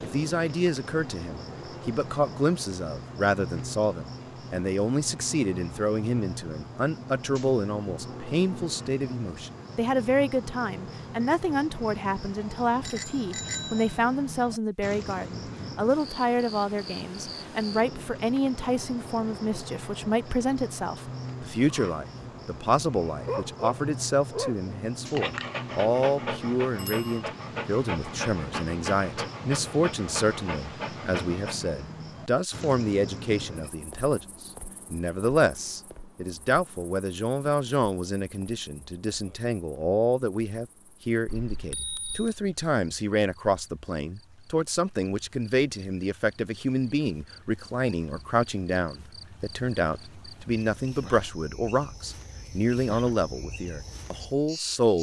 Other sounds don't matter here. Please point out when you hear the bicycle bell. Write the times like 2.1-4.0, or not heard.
12.8-14.0, 26.8-27.2, 41.2-42.4.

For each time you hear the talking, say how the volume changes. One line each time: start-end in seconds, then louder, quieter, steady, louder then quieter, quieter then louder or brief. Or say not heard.
0.0-54.9 steady.